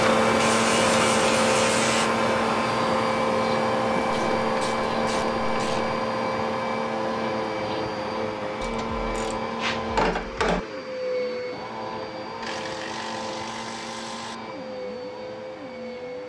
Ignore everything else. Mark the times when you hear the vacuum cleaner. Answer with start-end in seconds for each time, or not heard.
0.0-16.2.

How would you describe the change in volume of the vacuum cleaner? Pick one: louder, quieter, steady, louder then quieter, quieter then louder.
quieter.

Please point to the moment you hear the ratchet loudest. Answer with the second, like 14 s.
10 s.